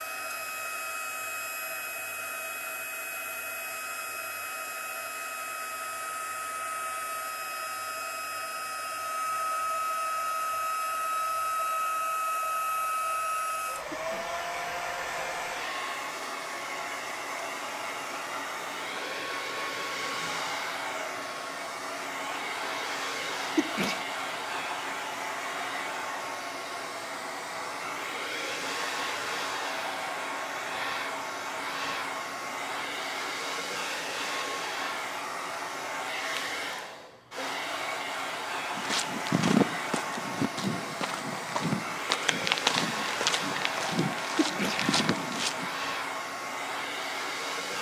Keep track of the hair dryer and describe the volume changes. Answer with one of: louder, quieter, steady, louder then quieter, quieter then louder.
steady.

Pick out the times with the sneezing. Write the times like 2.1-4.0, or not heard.
13.8-14.3, 23.4-24.0, 44.2-44.9.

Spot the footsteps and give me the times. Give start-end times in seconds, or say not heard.
38.8-45.7.